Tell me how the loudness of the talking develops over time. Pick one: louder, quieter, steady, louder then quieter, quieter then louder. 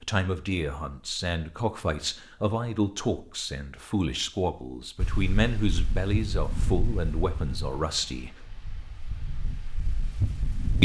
steady.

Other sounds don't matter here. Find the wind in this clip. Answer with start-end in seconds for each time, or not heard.
5.0-10.8.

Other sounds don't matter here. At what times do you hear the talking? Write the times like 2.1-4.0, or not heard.
0.0-8.4.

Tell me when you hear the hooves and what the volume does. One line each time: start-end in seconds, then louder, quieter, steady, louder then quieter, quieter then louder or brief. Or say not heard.
not heard.